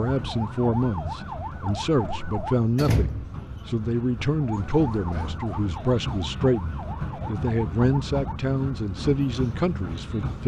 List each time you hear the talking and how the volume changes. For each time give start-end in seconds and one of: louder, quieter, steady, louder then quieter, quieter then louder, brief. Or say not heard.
0.0-10.4 steady.